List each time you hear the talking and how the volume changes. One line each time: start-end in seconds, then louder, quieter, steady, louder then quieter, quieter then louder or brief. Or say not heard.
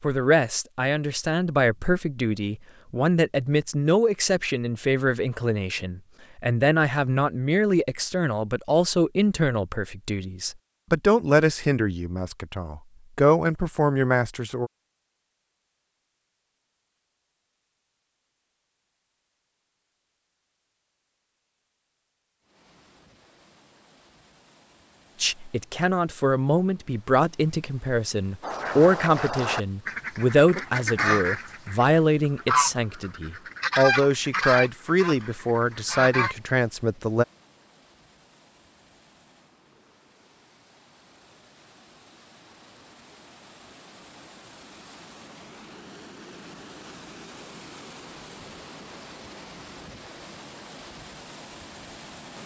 0.0-14.7 steady
25.2-37.2 steady.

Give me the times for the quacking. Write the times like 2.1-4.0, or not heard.
28.4-36.4.